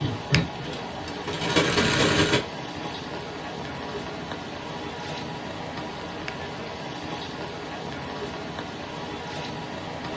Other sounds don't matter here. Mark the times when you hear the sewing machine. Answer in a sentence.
The sewing machine can be heard from 0.0 to 2.4 s.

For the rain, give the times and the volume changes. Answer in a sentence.
The rain can be heard from 0.0 to 10.1 s, at a steady volume.